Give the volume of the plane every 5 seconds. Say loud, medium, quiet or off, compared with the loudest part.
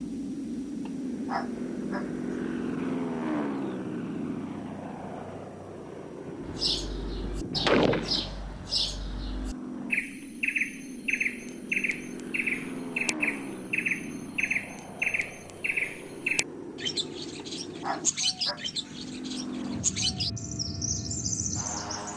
loud, medium, medium, medium, medium.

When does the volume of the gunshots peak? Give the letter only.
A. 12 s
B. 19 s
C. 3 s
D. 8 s
D.